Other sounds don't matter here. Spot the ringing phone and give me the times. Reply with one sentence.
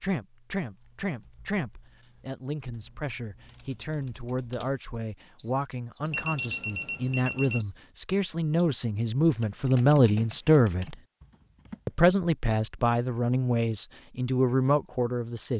You can hear the ringing phone from 6.1 to 7.7 s.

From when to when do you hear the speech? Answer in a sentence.
You can hear the speech from 0.0 to 10.9 s and from 11.8 to 15.5 s.